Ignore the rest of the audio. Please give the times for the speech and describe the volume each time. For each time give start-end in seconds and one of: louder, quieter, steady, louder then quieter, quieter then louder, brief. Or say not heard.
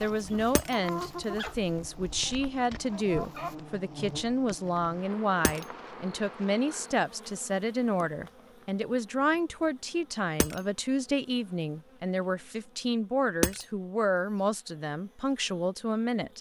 0.0-16.3 steady.